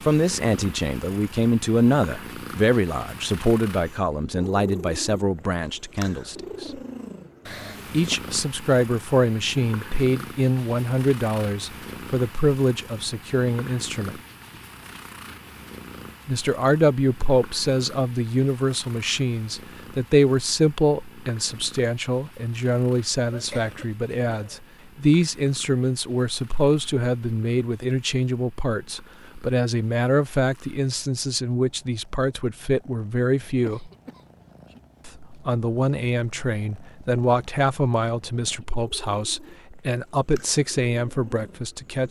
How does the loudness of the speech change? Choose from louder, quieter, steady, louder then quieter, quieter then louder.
steady.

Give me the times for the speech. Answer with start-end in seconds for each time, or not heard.
0.0-6.8, 7.9-14.2, 16.2-33.9, 35.0-42.0.